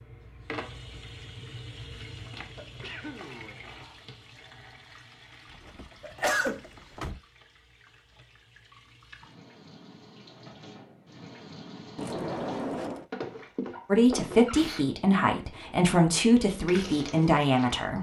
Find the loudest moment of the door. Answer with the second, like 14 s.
13 s.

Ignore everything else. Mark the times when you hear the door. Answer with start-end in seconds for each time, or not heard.
5.5-7.2, 11.9-13.1.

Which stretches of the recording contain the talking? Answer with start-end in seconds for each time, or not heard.
13.9-17.9.